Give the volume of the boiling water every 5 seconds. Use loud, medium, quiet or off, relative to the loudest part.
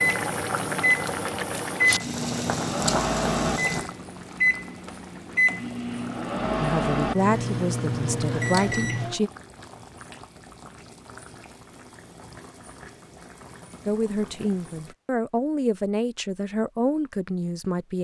loud, quiet, quiet, off.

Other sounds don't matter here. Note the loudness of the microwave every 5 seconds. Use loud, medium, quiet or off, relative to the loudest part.
loud, loud, off, off.